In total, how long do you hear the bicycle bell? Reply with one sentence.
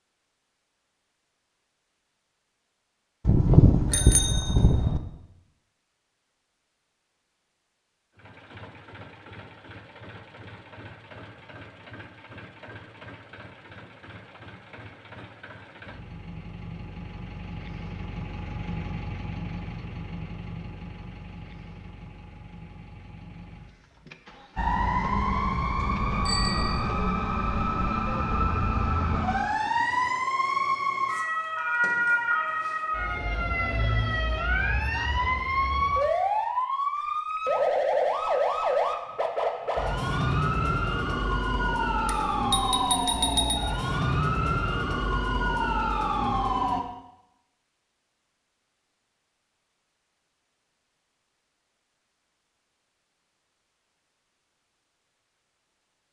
The bicycle bell can be heard for 4 seconds in total.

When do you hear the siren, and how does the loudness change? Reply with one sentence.
The siren can be heard from 24.6 to 46.9 s, at a steady volume.